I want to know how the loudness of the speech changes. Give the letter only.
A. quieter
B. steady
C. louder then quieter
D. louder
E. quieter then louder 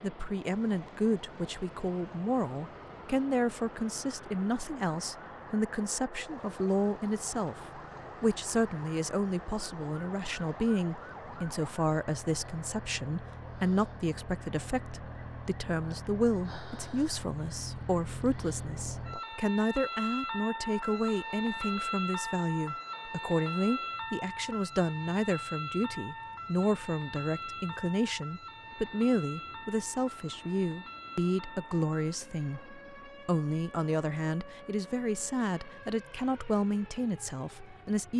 B.